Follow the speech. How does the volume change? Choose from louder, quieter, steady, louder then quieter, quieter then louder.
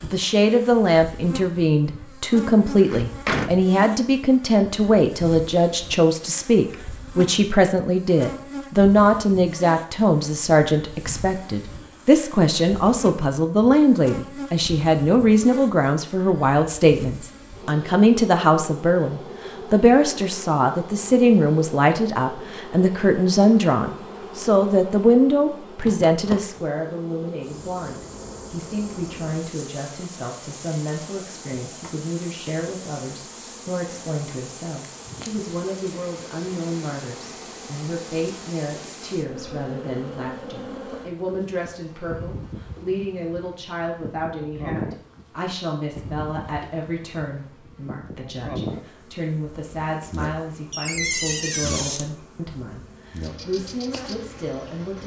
quieter.